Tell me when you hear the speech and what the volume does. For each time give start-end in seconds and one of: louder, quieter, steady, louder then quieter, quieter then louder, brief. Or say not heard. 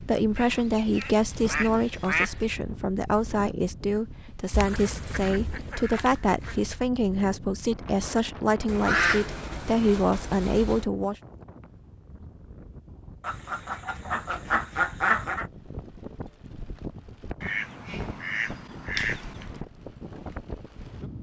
0.1-11.2 steady.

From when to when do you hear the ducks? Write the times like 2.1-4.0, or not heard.
0.3-2.5, 4.5-6.6, 8.7-10.8, 13.2-15.4, 17.4-19.6.